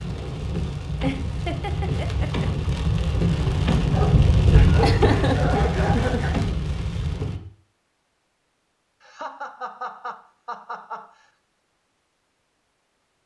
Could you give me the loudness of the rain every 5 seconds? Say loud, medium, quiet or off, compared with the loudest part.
loud, loud, off.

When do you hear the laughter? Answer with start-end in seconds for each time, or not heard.
1.0-2.5, 4.8-6.3, 9.0-11.2.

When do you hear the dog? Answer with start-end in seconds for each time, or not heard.
3.9-6.4.